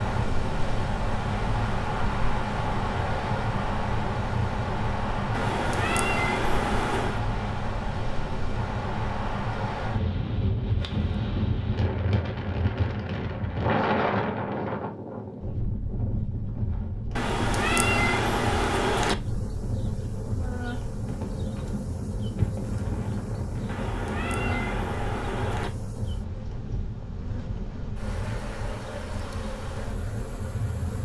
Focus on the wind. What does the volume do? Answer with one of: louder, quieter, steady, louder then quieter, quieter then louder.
quieter.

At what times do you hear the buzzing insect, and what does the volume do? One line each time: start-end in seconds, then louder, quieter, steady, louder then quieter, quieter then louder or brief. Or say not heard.
19.1-31.0 steady.